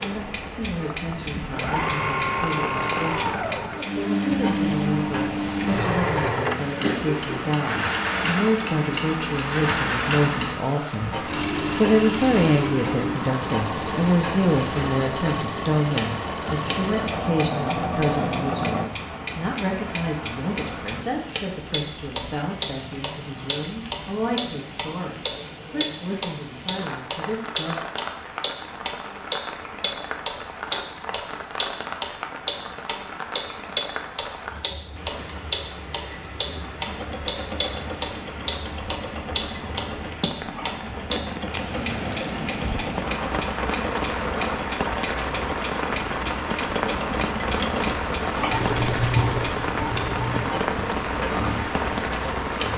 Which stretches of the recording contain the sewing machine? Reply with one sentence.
The sewing machine can be heard from 0.0 to 18.9 s and from 36.9 to 52.7 s.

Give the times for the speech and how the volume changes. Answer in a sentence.
The speech can be heard from 0.0 to 27.8 s, getting louder then quieter.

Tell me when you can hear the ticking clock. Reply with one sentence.
You can hear the ticking clock from 0.0 to 52.7 s.